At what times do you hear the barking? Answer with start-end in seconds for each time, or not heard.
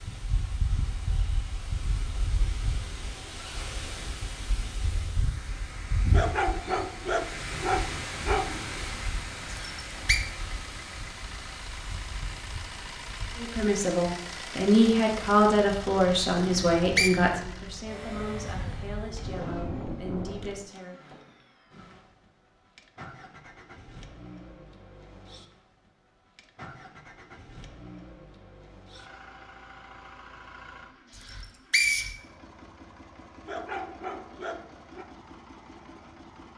6.1-8.7, 33.5-35.0.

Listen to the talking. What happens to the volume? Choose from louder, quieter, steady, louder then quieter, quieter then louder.
quieter.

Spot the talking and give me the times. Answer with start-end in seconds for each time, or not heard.
13.3-21.0.